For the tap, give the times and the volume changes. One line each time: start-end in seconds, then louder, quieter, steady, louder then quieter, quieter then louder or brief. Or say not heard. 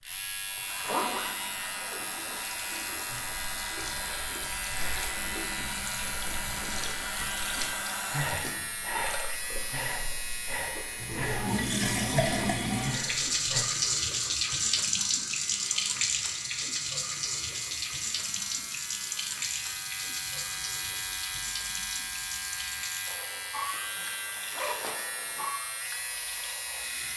0.1-27.1 louder then quieter.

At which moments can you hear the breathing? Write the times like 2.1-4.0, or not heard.
3.0-13.7.